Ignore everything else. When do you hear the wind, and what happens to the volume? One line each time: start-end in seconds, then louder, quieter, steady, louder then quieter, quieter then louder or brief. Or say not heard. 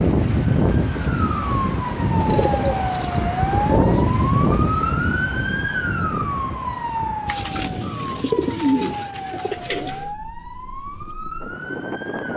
0.0-12.3 quieter.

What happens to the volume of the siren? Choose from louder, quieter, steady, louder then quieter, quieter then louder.
quieter.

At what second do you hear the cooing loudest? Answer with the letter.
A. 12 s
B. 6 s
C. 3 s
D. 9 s
D.